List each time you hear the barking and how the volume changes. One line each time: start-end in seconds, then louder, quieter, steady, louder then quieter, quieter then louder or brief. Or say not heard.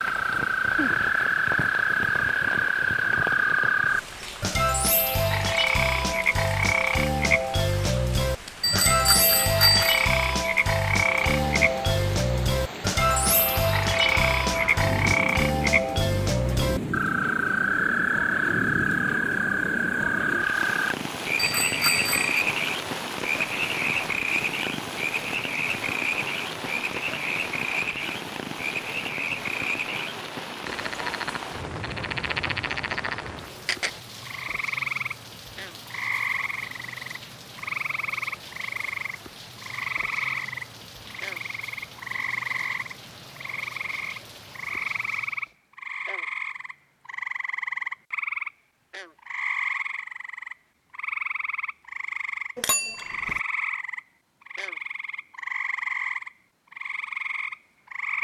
not heard.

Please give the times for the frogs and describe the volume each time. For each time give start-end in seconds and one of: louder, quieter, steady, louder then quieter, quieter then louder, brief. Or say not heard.
0.0-58.1 quieter.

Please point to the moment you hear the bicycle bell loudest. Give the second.
10 s.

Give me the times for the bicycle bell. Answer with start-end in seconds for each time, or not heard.
8.6-10.1, 21.4-22.4, 52.5-53.4.